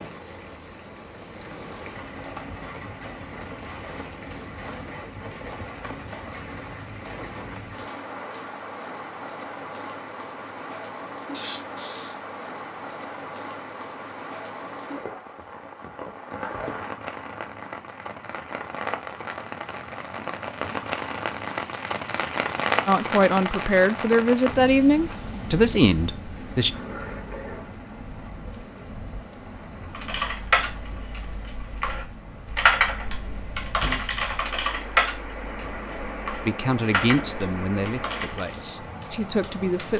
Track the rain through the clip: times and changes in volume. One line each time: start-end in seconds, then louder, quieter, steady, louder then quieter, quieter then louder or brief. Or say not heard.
0.0-39.9 louder then quieter.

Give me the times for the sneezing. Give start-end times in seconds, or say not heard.
11.3-12.2.